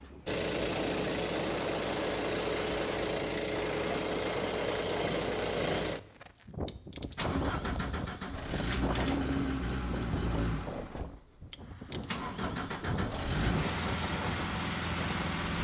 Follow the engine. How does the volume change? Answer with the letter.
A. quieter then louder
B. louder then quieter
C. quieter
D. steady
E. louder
D.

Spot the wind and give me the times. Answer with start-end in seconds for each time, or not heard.
0.0-15.5.